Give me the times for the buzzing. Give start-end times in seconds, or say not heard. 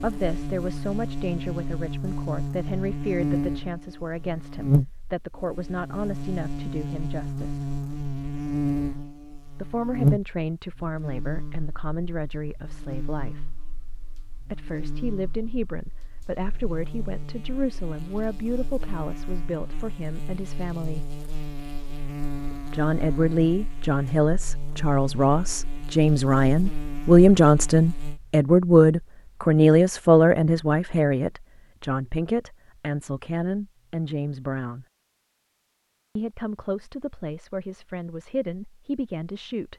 0.0-28.2.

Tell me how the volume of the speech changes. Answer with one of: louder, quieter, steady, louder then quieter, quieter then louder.
louder then quieter.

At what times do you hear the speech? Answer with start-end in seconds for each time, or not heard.
0.0-7.7, 9.6-13.5, 14.4-21.1, 22.7-34.9, 36.1-39.7.